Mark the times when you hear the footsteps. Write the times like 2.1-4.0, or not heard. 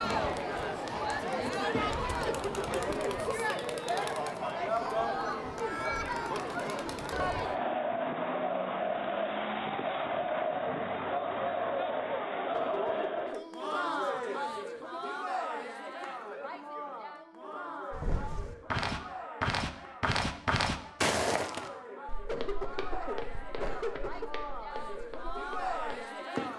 0.0-2.8, 17.9-26.4.